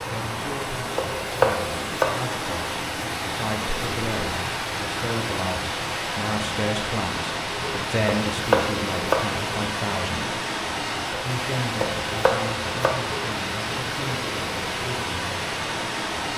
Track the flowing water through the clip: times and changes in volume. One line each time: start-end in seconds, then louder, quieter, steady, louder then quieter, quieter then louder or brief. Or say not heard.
0.0-16.3 steady.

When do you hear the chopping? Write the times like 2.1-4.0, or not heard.
0.9-2.2, 8.1-9.3, 11.8-13.0.